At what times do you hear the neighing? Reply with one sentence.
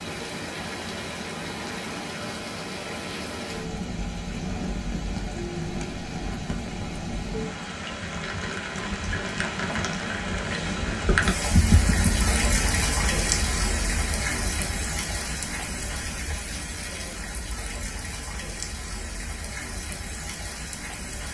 The neighing can be heard from 11.5 to 12.5 s.